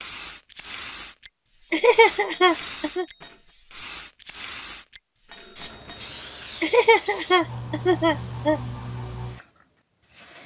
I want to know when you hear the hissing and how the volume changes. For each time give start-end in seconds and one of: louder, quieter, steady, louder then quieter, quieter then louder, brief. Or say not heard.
0.0-10.4 steady.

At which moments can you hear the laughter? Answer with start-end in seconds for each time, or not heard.
1.7-3.0, 6.6-8.6.